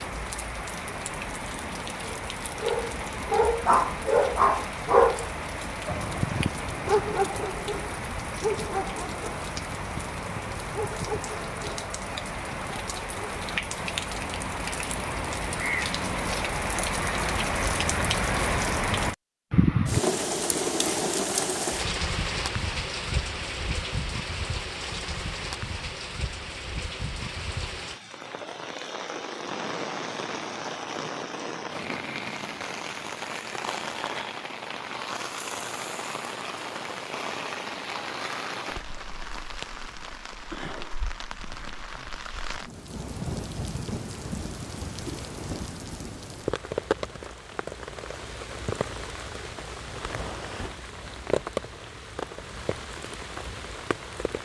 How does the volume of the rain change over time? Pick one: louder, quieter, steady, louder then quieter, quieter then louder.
louder then quieter.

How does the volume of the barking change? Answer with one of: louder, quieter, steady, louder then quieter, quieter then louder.
quieter.